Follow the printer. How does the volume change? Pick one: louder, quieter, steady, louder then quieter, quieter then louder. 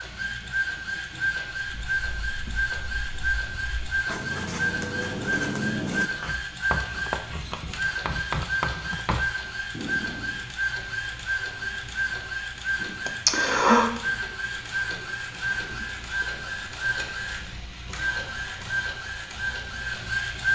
steady.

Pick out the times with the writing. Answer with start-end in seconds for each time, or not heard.
1.6-10.4.